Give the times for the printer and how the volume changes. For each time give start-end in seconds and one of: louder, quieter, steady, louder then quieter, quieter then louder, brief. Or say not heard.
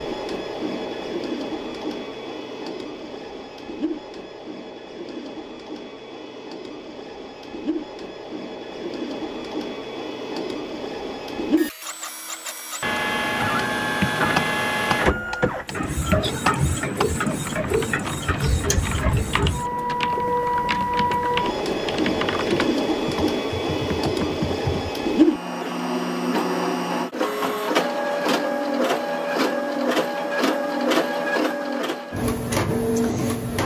0.0-33.6 louder.